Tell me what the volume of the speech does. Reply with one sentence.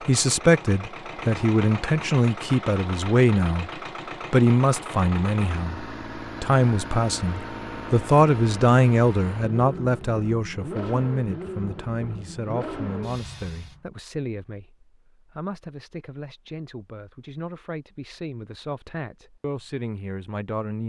The loudness of the speech goes down.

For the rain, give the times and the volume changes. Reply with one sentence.
You can't hear the rain here.